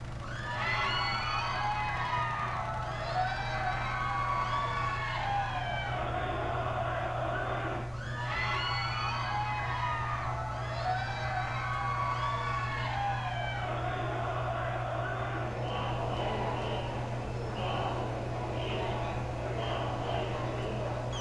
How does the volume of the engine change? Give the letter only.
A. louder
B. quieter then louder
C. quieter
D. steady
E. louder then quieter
D.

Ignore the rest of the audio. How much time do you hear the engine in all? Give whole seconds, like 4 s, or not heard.
21 s.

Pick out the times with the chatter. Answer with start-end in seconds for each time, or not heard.
0.1-21.1.